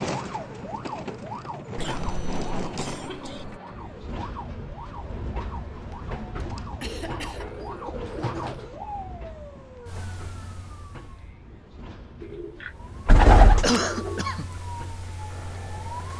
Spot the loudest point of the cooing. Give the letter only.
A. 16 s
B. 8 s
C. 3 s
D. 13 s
D.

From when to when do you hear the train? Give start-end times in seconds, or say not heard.
0.1-16.1.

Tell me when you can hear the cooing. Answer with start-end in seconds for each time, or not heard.
1.8-3.6, 6.8-8.7, 12.4-14.2.